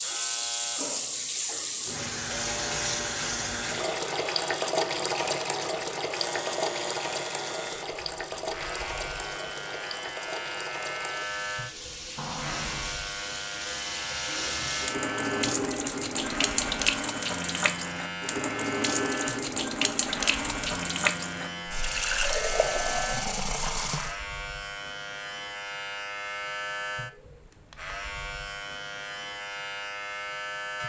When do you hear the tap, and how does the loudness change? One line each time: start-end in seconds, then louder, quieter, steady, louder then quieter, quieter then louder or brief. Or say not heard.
0.0-24.2 quieter then louder.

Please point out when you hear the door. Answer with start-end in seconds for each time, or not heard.
12.2-12.9.